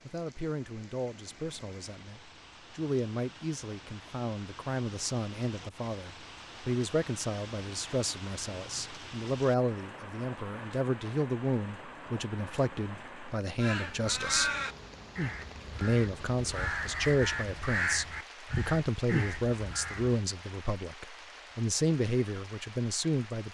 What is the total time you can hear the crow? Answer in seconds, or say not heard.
7 s.